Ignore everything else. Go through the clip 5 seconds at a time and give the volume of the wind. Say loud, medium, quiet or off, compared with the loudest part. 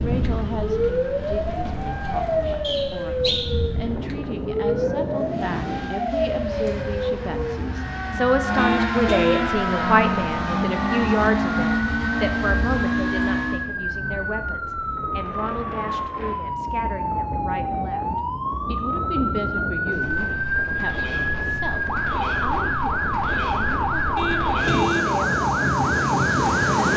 medium, medium, quiet, medium, medium, loud.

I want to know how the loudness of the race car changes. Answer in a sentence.
The loudness of the race car goes up.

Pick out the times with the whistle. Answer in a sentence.
You can hear the whistle from 2.6 to 3.4 s.